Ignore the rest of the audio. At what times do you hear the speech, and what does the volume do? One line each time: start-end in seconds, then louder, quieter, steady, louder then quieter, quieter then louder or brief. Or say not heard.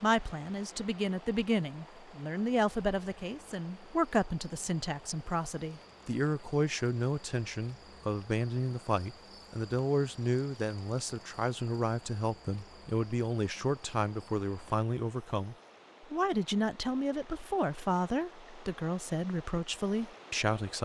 0.0-20.7 steady.